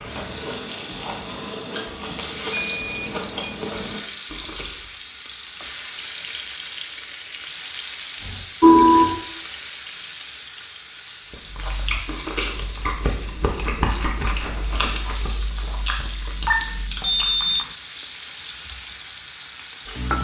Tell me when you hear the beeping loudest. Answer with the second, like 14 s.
9 s.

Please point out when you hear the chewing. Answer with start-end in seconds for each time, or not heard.
0.0-4.9, 11.3-17.5.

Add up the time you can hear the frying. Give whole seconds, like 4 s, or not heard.
20 s.